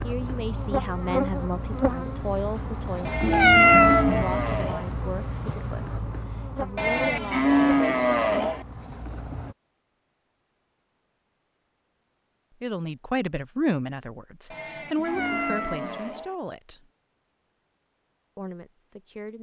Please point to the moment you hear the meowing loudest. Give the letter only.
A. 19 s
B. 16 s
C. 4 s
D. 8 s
C.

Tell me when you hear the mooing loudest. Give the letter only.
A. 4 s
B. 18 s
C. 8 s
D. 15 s
C.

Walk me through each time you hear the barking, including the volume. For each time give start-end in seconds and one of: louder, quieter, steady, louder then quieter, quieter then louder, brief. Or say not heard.
not heard.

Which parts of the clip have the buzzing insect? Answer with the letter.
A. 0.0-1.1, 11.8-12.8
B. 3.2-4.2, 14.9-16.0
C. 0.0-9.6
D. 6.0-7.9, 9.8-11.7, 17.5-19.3
C.